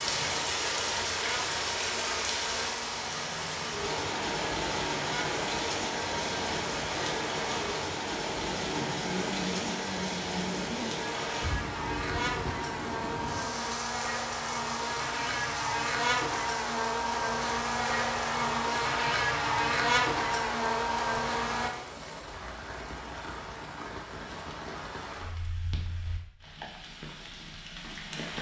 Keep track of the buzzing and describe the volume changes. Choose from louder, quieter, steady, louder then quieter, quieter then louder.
louder.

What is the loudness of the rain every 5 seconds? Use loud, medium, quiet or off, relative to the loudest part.
loud, loud, medium, medium, medium, medium.